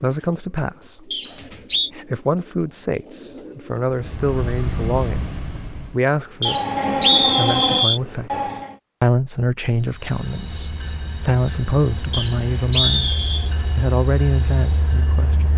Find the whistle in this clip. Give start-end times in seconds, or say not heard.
1.1-1.9, 6.4-8.0, 12.1-13.5.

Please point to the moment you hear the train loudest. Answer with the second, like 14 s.
7 s.